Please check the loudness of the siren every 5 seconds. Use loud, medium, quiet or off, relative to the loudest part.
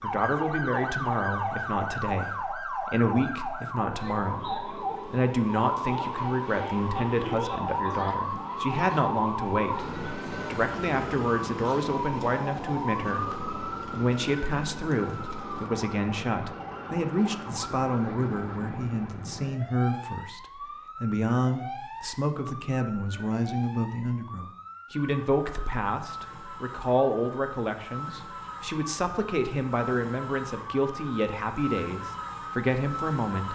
loud, loud, loud, medium, medium, medium, medium.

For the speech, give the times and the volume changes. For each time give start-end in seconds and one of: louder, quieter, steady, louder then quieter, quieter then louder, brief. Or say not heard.
0.0-33.5 steady.